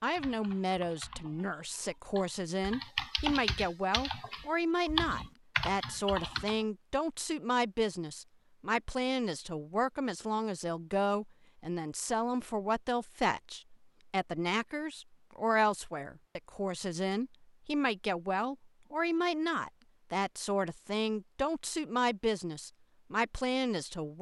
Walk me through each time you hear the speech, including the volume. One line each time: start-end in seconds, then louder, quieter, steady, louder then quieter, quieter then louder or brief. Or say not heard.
0.0-24.1 steady.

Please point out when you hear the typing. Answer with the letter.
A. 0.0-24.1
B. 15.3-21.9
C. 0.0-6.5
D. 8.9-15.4
C.